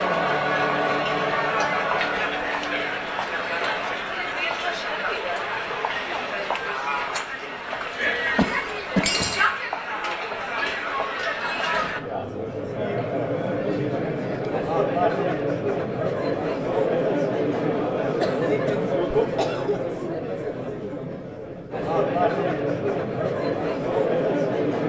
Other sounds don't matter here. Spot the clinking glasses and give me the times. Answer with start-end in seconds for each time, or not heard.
8.0-9.5.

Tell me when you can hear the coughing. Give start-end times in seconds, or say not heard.
8.3-9.1, 18.2-19.8.